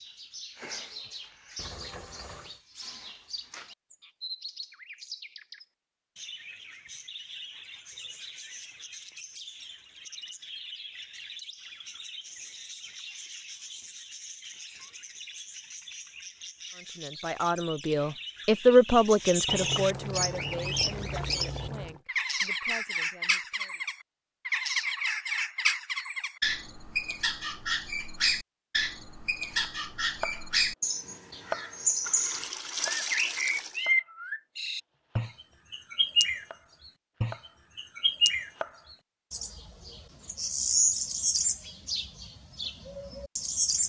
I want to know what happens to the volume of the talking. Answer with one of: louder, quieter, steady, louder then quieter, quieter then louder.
louder then quieter.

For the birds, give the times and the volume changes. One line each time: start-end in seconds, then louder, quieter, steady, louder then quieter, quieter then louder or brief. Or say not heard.
0.0-43.8 louder.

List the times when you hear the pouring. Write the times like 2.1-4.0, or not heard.
1.6-2.6, 19.4-22.0, 32.0-33.8.